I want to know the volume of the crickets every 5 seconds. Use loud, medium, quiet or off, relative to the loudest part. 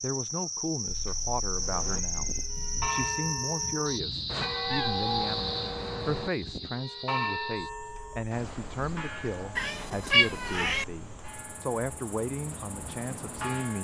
loud, medium, quiet.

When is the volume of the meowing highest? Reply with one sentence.
The volume of the meowing peaks at 10 seconds.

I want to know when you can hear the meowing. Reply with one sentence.
You can hear the meowing from 0.8 to 2.8 s, from 4.6 to 5.3 s and from 9.6 to 10.8 s.